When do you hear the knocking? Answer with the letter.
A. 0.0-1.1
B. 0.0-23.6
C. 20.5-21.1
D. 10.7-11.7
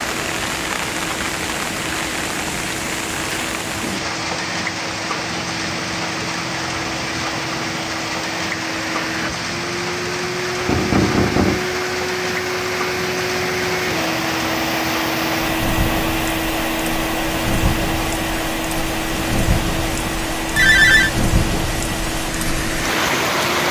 D.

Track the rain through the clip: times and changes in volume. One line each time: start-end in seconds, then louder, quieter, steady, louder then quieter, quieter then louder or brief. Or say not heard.
0.0-23.6 steady.